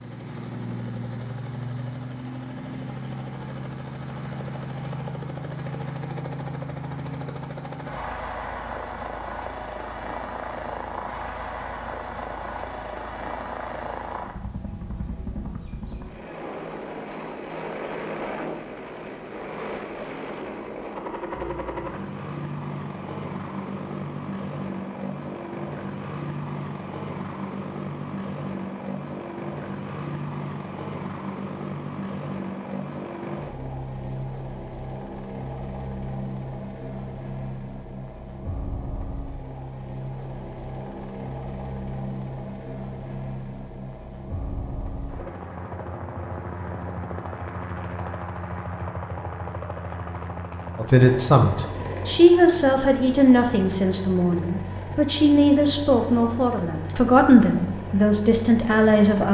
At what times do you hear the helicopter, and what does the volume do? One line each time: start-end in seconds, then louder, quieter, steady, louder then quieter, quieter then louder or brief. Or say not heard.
0.0-59.2 steady.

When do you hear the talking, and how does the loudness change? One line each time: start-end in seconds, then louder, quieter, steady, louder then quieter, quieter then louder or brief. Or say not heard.
50.8-59.2 steady.